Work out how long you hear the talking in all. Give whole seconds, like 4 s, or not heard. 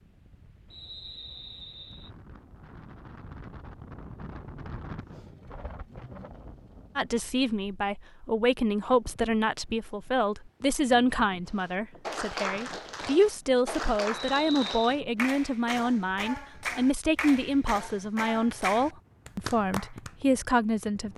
14 s.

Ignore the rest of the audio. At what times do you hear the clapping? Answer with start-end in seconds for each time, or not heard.
11.5-20.2.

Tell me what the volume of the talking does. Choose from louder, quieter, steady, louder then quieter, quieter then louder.
steady.